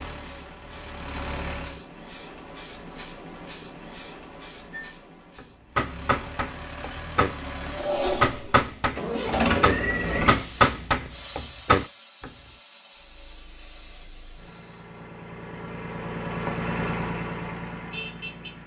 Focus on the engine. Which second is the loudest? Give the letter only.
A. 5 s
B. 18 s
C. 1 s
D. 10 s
D.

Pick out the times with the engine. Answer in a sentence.
You can hear the engine from 0.0 to 1.8 s, from 5.7 to 10.4 s and from 12.9 to 18.6 s.